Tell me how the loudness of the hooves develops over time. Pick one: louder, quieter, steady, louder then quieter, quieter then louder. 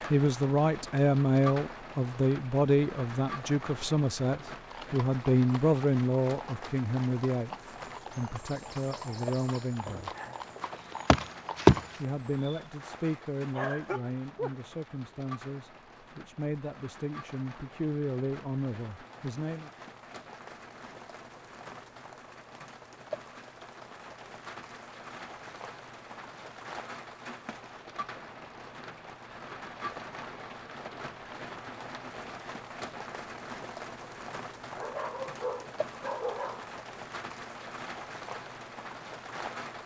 louder.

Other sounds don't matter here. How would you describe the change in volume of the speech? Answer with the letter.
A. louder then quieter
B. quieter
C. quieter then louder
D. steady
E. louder
B.